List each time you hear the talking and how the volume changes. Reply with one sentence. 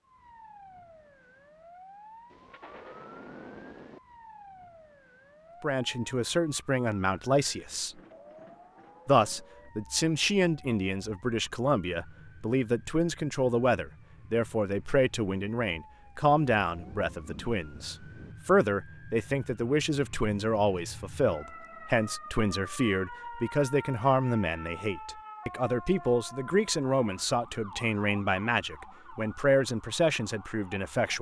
The talking can be heard briefly from 5.6 to 8.0 s; and from 9.1 to 31.1 s, at a steady volume.